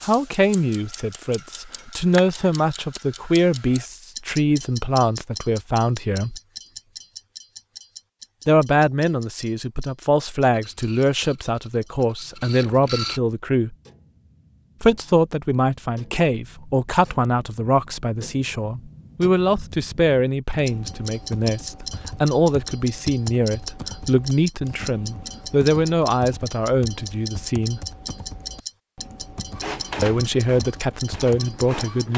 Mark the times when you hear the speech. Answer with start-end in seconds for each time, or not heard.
0.0-6.4, 8.4-13.8, 14.8-27.8, 30.0-32.1.